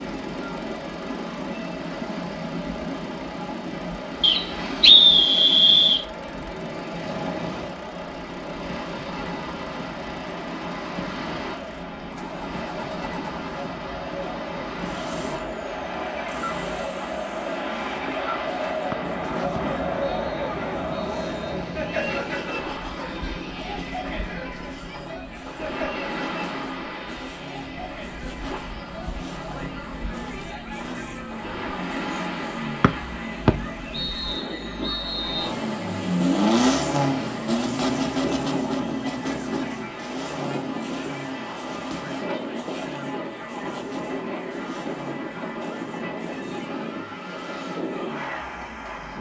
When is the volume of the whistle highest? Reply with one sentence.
The volume of the whistle peaks at 5 seconds.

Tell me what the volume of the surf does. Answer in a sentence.
The volume of the surf stays about the same.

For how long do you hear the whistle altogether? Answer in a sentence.
The whistle can be heard for 7 seconds in total.